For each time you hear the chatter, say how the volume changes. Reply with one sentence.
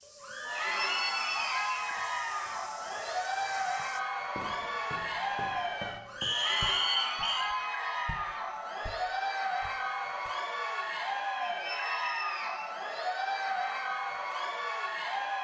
You can hear the chatter from 0.1 to 15.4 s, at a steady volume.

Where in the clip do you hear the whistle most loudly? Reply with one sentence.
The volume of the whistle peaks at 7 seconds.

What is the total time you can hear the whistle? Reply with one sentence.
You can hear the whistle for 4 seconds altogether.